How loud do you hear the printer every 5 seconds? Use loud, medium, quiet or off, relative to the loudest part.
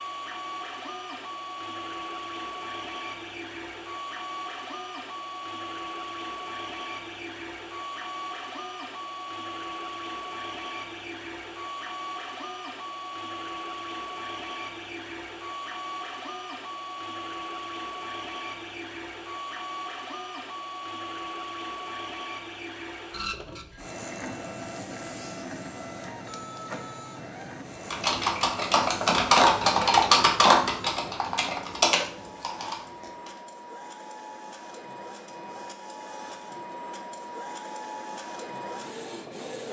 loud, loud, loud, loud, loud, loud, medium, loud.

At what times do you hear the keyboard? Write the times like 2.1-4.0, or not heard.
27.8-33.3.